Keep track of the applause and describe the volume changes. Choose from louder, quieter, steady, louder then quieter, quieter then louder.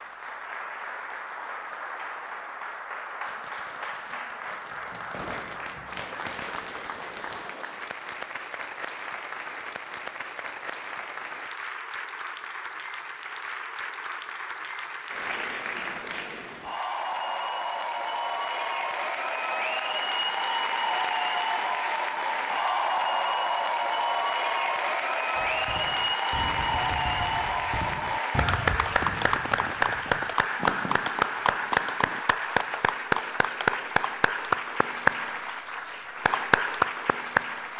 louder.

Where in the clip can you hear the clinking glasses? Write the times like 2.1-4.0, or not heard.
not heard.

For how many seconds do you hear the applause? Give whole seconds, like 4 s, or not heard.
38 s.